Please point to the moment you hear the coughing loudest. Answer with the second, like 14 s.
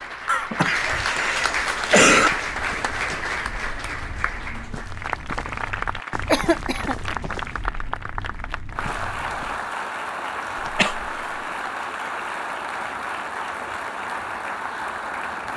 2 s.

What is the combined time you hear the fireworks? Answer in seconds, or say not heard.
not heard.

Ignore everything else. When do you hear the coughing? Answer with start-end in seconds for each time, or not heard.
0.2-2.3, 6.2-7.0, 10.6-11.2.